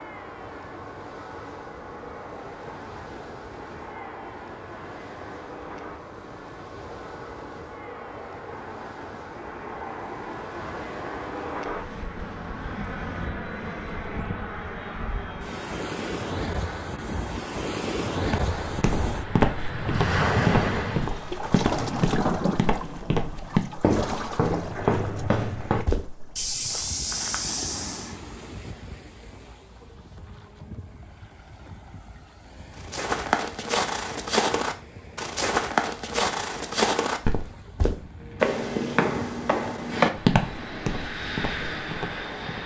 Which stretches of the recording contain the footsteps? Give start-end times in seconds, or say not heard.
18.2-28.1, 32.8-42.6.